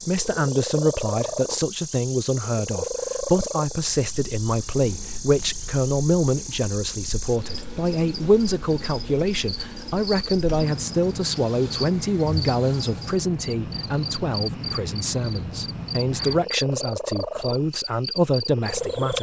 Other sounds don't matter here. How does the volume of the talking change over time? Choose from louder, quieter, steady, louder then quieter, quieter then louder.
steady.